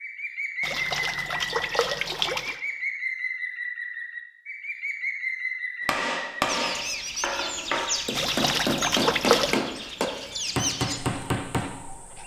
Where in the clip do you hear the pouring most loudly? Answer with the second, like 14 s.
9 s.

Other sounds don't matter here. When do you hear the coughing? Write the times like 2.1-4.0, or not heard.
not heard.